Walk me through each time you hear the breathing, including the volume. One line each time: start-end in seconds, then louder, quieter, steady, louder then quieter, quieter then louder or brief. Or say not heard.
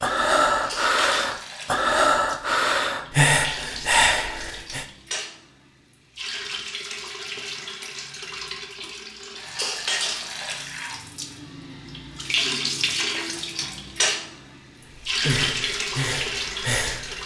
0.0-4.8 steady
14.8-17.2 brief.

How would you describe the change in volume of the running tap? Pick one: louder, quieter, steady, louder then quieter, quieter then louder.
louder.